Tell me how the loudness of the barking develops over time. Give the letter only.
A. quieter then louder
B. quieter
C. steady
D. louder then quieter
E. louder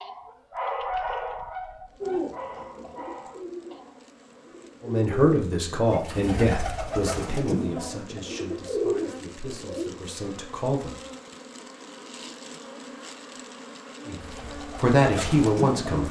B.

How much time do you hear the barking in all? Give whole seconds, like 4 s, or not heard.
4 s.